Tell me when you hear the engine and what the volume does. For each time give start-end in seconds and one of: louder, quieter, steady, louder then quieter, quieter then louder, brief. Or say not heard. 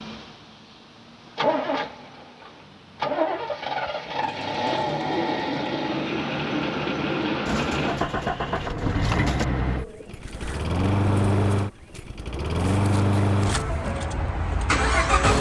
0.0-15.3 steady.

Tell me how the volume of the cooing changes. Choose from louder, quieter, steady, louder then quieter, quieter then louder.
quieter.